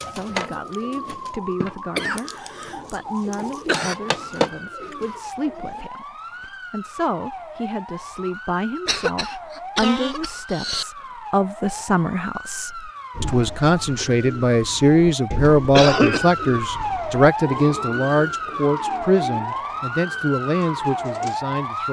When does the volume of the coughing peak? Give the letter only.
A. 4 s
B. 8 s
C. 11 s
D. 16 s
D.